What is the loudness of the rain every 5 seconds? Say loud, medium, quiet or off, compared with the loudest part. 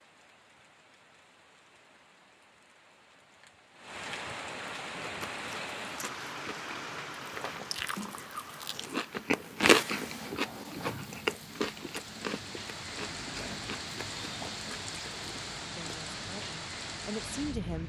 medium, loud, loud, loud.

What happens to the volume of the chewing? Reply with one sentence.
The volume of the chewing goes up, then down.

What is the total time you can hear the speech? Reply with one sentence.
The speech can be heard for 2 seconds in total.